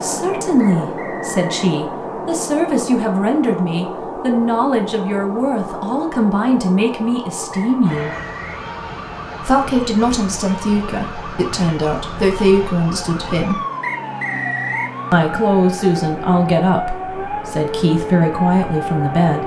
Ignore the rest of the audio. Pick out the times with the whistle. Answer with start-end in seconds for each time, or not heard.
0.6-1.7, 7.5-8.6, 13.8-14.9.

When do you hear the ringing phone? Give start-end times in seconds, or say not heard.
not heard.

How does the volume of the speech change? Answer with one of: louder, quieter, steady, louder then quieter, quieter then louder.
steady.